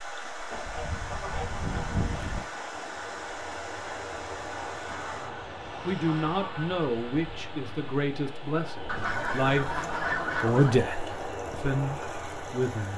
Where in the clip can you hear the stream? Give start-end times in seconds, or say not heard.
0.0-12.9.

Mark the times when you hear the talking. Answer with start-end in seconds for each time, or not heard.
5.8-12.9.